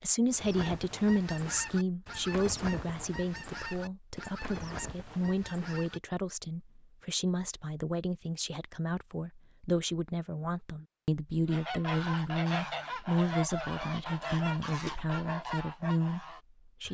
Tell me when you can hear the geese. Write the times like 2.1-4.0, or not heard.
0.2-6.0, 11.4-16.8.